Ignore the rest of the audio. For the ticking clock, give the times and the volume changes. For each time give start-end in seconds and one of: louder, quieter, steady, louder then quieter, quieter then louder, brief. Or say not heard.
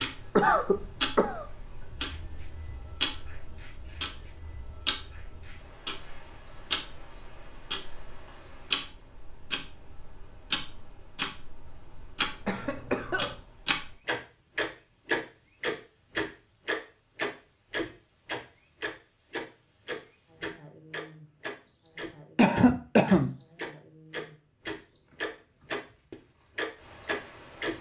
0.0-27.7 steady.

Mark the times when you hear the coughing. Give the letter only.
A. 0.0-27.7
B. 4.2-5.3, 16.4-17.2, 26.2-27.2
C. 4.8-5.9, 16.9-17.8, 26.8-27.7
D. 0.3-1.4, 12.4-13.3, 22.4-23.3
D.